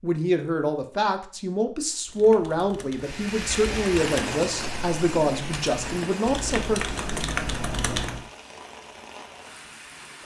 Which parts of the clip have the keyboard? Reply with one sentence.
You can hear the keyboard from 2.0 to 8.3 s.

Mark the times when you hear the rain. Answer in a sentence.
The rain can be heard from 3.0 to 10.2 s.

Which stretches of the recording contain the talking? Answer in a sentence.
You can hear the talking from 0.0 to 6.8 s.